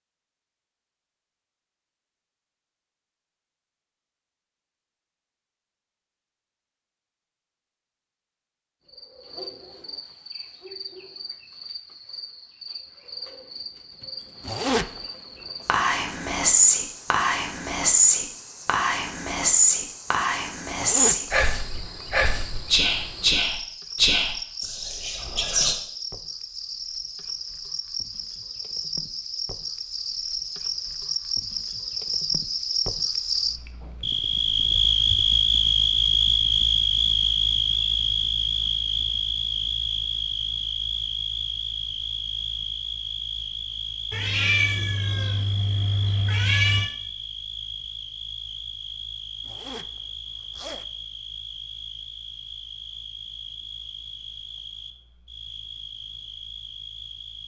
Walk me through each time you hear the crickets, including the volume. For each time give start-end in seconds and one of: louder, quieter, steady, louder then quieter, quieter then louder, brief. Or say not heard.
8.8-57.4 louder then quieter.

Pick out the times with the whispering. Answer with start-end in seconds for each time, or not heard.
15.7-25.8.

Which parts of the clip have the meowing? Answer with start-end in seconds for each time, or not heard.
44.1-46.9.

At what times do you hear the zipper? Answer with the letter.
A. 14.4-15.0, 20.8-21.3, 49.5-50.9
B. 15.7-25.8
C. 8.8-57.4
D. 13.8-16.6
A.